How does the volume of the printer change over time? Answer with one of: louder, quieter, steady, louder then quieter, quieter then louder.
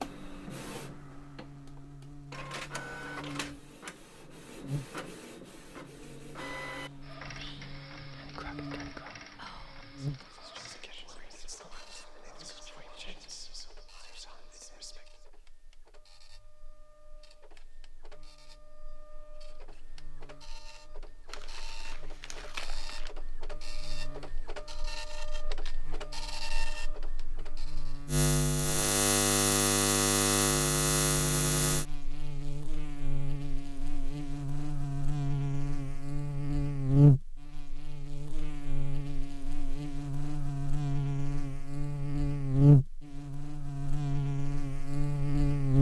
quieter then louder.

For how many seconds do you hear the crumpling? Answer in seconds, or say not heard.
2 s.